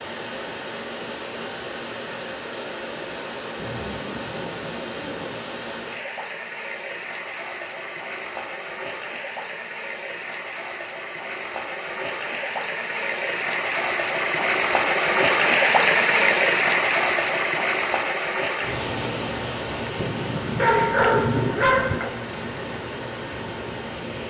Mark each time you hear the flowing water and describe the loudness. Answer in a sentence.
You can hear the flowing water from 0.0 to 24.2 s, getting louder then quieter.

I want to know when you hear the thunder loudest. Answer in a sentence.
The loudest moment of the thunder is at 21 seconds.